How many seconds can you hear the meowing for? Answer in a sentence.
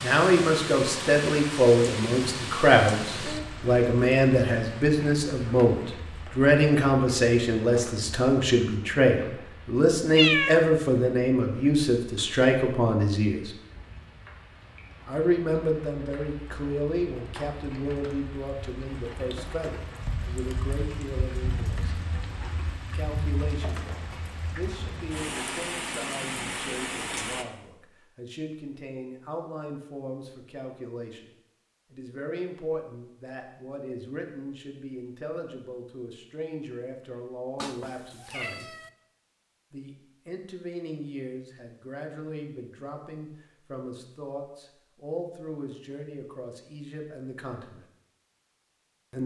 The meowing can be heard for 2 seconds in total.